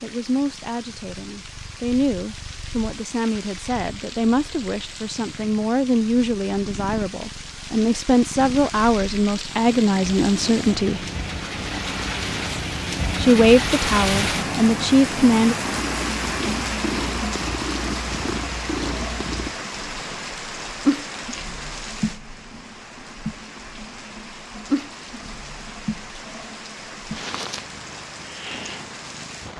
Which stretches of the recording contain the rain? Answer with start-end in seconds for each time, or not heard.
0.0-29.5.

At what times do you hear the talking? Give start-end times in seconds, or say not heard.
0.0-11.1, 13.2-15.6.